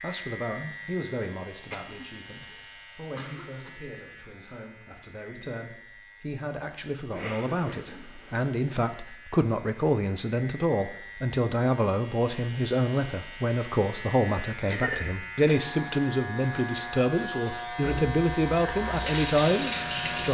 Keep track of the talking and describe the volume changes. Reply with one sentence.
The loudness of the talking goes up.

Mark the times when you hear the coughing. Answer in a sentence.
You can hear the coughing from 1.5 to 3.8 s, from 7.1 to 8.5 s and from 14.7 to 15.6 s.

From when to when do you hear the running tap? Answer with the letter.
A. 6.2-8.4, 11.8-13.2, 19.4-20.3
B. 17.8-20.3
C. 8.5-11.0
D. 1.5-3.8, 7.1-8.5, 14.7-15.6
B.